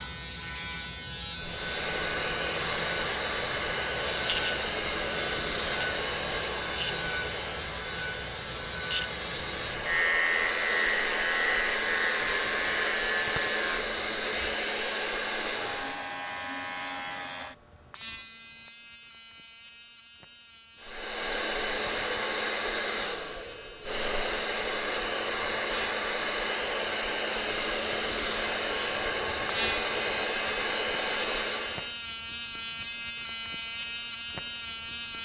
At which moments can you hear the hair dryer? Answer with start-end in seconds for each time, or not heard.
1.4-16.1, 20.8-31.9.